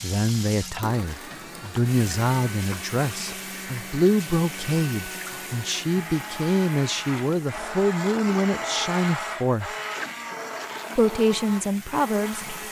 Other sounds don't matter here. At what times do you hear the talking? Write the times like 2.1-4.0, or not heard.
0.0-9.8, 10.9-12.6.